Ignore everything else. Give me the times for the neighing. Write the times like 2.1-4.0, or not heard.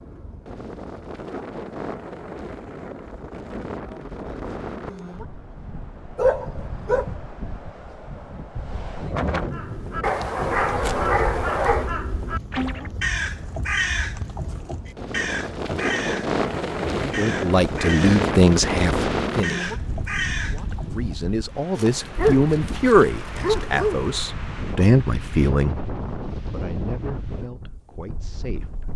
not heard.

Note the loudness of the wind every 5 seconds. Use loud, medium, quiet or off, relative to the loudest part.
medium, medium, quiet, loud, medium, medium.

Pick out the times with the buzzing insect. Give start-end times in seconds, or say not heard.
not heard.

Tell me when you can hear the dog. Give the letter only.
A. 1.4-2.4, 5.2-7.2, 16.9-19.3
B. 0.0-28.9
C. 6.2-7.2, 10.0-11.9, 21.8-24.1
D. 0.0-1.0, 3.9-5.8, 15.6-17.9
C.